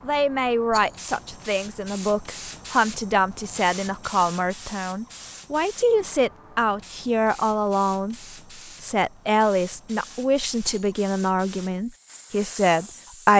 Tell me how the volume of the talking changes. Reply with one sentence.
The volume of the talking stays about the same.